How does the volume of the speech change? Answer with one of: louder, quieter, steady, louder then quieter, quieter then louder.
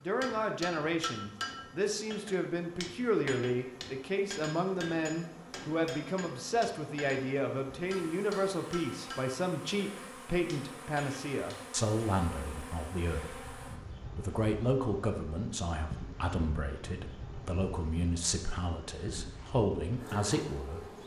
steady.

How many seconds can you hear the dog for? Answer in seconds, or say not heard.
not heard.